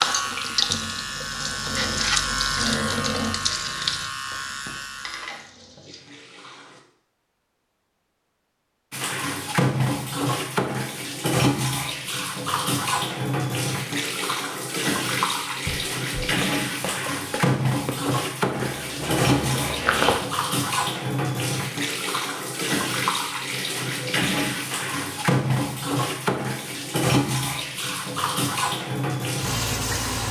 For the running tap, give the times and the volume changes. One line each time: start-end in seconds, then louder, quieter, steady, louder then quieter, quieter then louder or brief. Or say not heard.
0.0-6.8 quieter
8.9-30.2 steady.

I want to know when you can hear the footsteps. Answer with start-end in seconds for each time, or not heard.
15.7-20.2.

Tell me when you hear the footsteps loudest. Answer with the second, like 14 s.
20 s.